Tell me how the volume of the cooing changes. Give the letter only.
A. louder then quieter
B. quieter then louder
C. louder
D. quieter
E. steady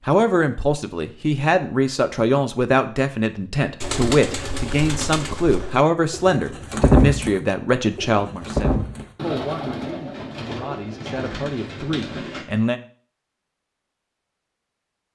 A.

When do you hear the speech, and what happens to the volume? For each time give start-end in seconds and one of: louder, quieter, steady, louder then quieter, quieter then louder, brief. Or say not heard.
0.0-12.8 quieter.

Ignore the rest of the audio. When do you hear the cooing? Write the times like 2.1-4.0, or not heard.
3.8-12.4.